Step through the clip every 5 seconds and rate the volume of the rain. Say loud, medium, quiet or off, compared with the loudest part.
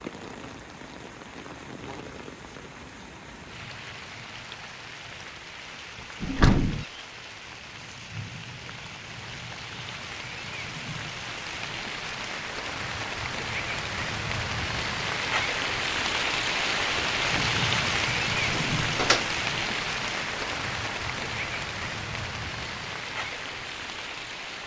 quiet, quiet, medium, loud, medium.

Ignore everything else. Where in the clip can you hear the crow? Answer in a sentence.
The crow can't be heard in this clip.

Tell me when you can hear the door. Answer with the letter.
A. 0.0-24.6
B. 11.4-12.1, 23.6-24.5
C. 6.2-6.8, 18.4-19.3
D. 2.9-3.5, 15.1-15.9
C.